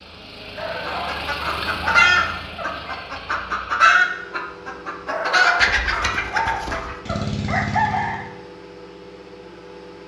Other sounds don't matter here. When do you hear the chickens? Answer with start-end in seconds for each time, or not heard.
0.8-8.2.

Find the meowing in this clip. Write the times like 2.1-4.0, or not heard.
not heard.